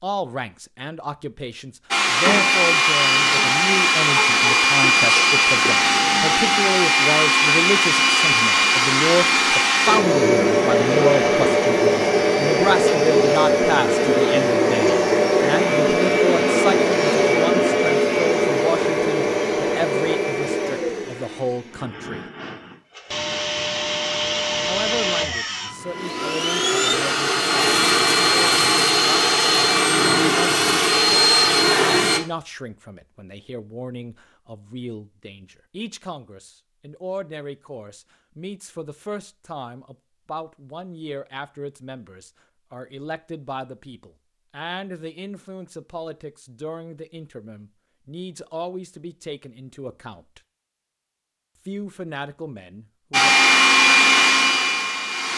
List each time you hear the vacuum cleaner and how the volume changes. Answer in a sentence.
You can hear the vacuum cleaner from 1.9 to 32.2 s, getting quieter then louder; and briefly from 53.1 to 55.3 s.